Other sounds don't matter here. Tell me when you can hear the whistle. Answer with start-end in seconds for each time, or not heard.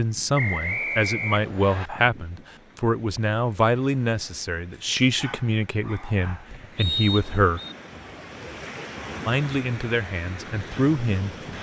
0.3-1.9, 6.8-7.8.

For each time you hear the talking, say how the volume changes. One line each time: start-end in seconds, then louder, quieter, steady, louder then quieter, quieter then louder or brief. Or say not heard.
0.0-7.6 steady
9.2-11.3 brief.